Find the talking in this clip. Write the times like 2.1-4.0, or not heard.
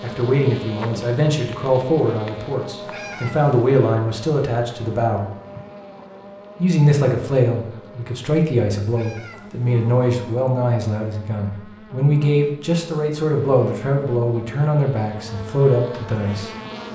0.0-5.2, 6.6-16.5.